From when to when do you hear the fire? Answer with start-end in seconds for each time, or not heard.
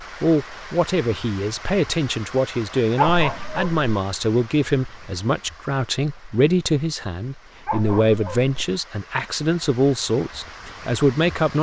not heard.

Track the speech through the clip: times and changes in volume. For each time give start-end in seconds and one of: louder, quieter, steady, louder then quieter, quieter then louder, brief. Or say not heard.
0.0-11.5 steady.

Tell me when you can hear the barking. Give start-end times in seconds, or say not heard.
3.0-3.9, 7.7-8.7.